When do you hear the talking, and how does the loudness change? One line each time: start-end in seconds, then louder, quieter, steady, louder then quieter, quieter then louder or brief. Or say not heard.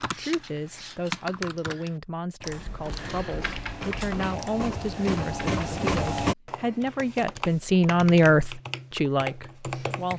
0.1-10.1 louder.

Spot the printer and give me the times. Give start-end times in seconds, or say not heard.
2.9-6.3.